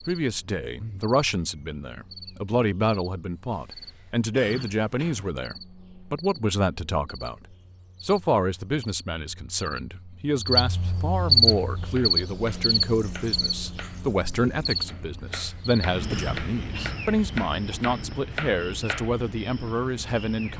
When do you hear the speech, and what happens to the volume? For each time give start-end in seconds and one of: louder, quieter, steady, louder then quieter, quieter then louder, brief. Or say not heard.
0.1-20.5 steady.